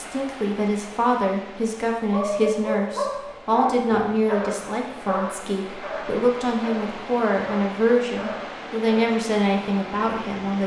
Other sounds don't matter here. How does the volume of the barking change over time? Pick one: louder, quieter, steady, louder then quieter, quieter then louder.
quieter.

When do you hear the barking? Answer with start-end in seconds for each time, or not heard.
2.1-9.2.